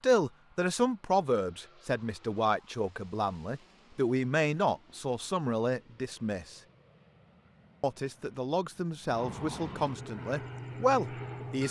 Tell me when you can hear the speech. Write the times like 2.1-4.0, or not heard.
0.0-6.6, 7.8-11.6.